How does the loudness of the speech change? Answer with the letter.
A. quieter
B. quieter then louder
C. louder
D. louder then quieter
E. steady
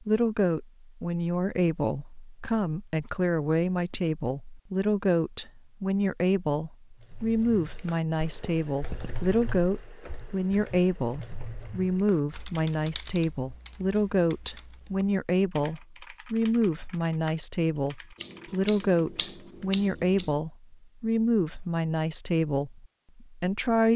E.